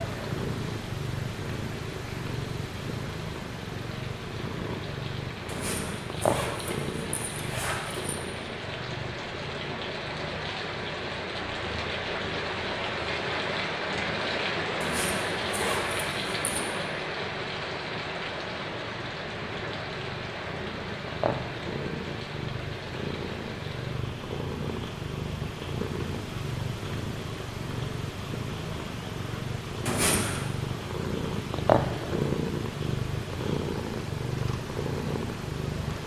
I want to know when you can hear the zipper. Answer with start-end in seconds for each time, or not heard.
5.5-8.2, 14.8-16.7, 29.9-30.6.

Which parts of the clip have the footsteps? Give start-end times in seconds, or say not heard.
not heard.